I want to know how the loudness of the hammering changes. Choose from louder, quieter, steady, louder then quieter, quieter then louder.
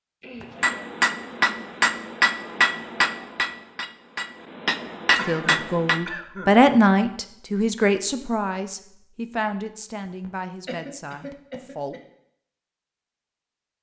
quieter then louder.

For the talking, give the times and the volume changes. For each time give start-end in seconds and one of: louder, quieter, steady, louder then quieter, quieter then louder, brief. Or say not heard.
5.2-11.9 quieter.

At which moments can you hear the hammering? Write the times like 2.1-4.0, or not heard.
0.6-6.0.